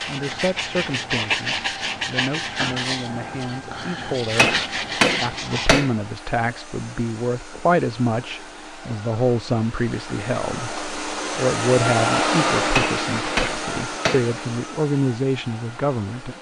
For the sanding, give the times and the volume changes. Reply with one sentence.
The sanding can be heard from 0.0 to 5.8 s, getting quieter then louder.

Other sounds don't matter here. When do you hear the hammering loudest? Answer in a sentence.
The loudest moment of the hammering is at 5 seconds.